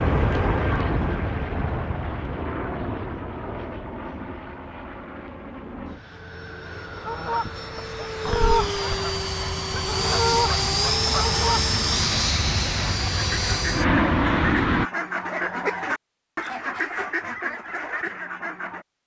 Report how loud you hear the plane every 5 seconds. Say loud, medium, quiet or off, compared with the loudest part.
medium, medium, loud, off.